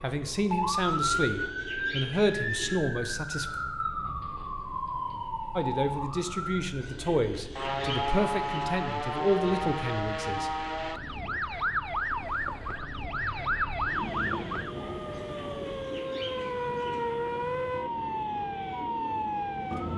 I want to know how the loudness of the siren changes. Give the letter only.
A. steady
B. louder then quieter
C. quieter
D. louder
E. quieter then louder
A.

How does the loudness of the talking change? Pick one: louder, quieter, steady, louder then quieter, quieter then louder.
steady.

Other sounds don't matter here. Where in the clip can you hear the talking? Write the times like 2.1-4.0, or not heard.
0.0-3.5, 5.5-10.5.